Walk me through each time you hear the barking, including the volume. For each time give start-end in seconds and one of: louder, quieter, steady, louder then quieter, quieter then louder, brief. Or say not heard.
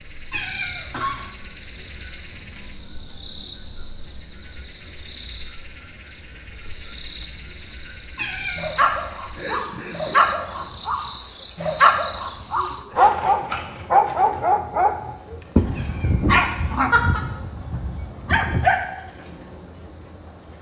8.6-18.8 louder then quieter.